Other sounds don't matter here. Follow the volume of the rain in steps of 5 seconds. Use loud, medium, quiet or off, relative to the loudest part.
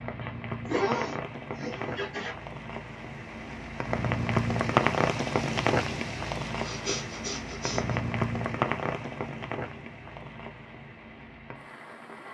loud, loud, quiet.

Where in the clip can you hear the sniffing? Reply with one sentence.
The sniffing can be heard from 0.2 to 2.4 s and from 6.6 to 8.0 s.